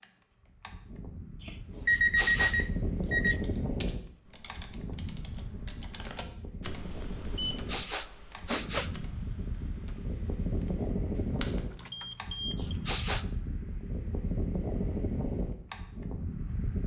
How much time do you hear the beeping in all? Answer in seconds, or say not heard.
4 s.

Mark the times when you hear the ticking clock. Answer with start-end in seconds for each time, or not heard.
not heard.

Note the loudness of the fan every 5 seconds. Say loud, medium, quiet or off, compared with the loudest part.
loud, medium, loud, loud.